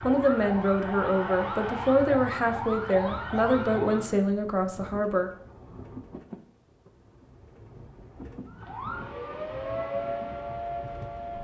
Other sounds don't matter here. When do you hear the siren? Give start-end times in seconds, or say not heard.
0.0-4.2, 8.4-11.3.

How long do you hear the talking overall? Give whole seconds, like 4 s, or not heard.
5 s.